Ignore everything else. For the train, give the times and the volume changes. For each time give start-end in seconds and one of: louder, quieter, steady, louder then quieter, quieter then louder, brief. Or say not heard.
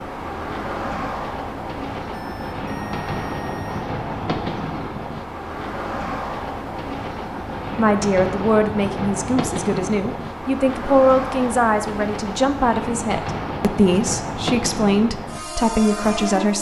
0.0-16.5 steady.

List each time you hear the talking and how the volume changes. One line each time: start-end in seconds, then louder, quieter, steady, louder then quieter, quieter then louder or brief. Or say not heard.
7.8-16.5 steady.